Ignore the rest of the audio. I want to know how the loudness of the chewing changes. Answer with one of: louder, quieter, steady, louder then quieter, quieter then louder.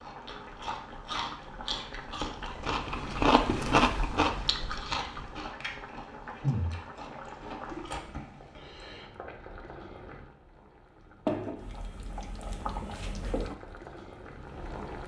louder then quieter.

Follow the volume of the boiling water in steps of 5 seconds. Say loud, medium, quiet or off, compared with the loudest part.
medium, medium, loud.